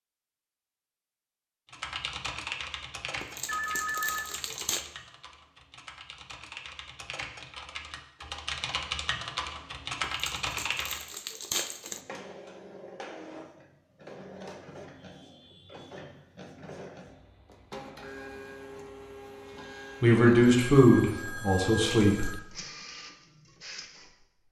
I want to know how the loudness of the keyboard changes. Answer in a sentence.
The loudness of the keyboard goes down, then up.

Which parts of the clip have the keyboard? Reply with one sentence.
You can hear the keyboard from 1.7 to 11.1 s.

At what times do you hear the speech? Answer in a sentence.
You can hear the speech from 20.0 to 22.4 s.